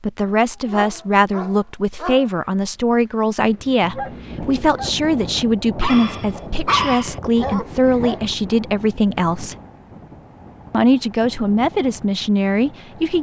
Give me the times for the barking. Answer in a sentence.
The barking can be heard from 0.5 to 8.3 s.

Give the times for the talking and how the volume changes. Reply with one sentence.
You can hear the talking from 0.0 to 9.6 s, at a steady volume; and briefly from 10.7 to 13.1 s.